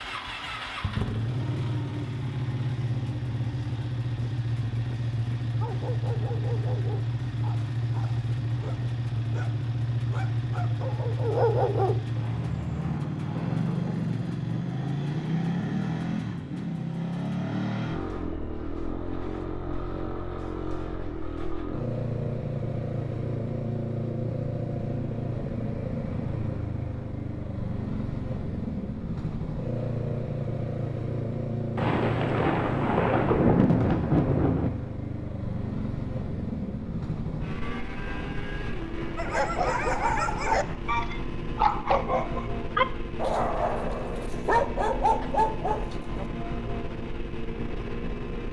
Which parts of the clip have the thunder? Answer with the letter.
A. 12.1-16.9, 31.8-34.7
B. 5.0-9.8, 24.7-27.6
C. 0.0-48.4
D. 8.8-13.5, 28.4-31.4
A.